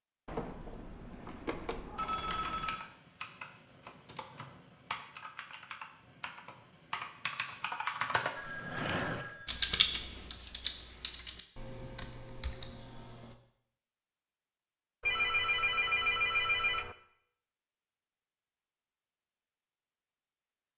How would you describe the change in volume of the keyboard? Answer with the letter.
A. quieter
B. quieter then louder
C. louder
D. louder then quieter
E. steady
D.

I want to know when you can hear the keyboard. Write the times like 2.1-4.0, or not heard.
2.2-13.3.